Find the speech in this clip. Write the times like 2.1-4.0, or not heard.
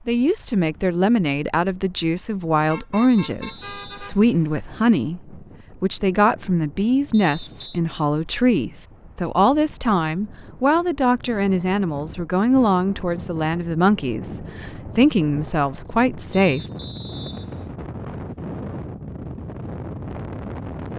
0.1-16.6.